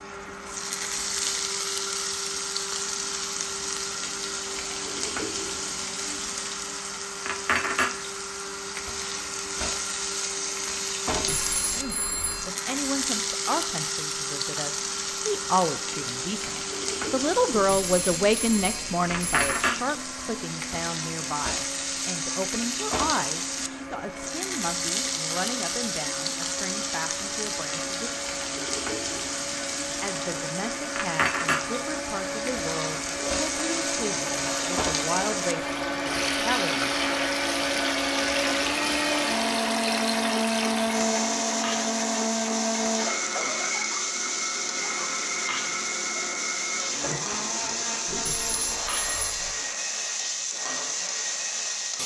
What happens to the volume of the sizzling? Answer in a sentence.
The loudness of the sizzling stays about the same.